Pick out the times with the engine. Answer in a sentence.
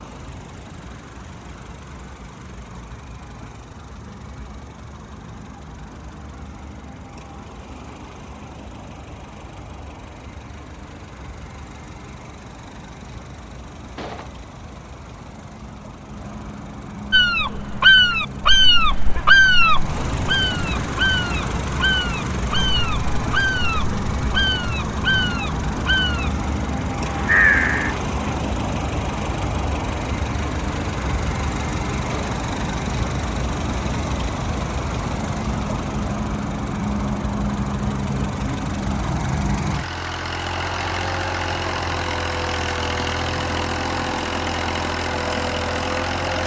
The engine can be heard from 0.0 to 46.4 s.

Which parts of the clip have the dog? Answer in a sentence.
The dog can't be heard in this clip.